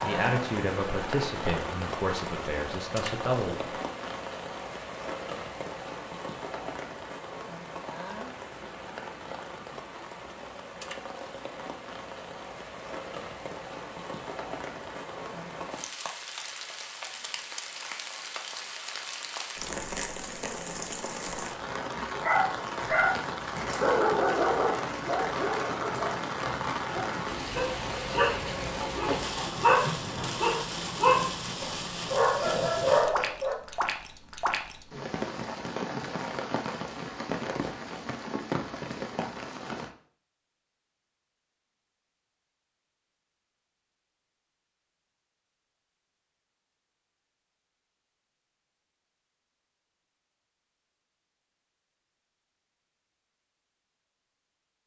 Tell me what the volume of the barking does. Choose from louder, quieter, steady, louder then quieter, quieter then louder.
quieter then louder.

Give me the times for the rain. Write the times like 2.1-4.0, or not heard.
0.0-39.9.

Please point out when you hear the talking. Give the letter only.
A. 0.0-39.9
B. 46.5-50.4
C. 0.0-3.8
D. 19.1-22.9
C.